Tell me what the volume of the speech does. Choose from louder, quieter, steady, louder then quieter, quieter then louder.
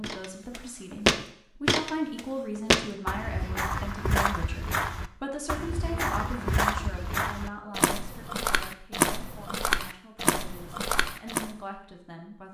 quieter.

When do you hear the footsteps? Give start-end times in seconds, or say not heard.
0.0-11.6.